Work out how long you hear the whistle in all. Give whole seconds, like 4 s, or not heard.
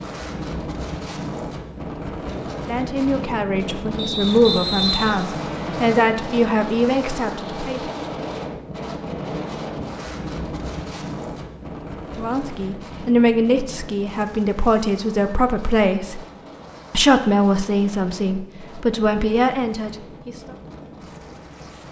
2 s.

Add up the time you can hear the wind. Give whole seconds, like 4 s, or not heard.
22 s.